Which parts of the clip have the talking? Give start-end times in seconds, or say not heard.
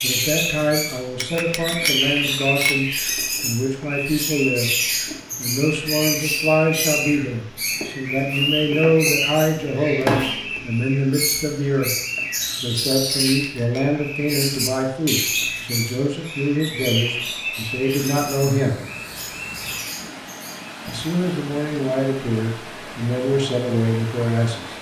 0.0-4.7, 5.3-11.9, 12.6-18.8, 20.9-24.7.